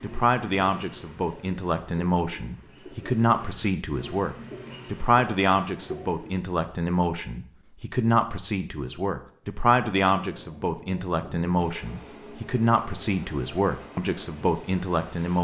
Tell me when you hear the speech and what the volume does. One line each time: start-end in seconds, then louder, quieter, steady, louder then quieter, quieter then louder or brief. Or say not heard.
0.0-15.4 steady.